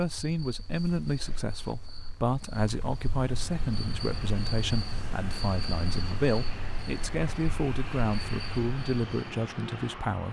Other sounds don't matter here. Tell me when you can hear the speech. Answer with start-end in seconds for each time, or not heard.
0.0-10.2.